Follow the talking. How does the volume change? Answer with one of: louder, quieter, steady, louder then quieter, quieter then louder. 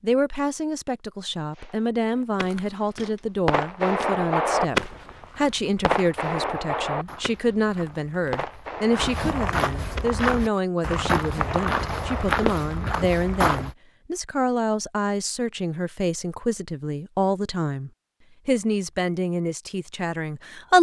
steady.